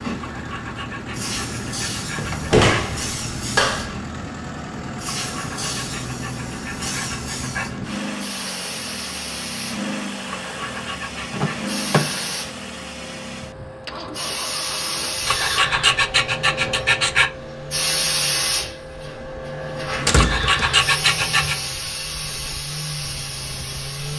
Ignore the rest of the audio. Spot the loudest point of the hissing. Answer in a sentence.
The volume of the hissing peaks at 18 seconds.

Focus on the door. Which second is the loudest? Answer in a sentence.
The volume of the door peaks at 3 seconds.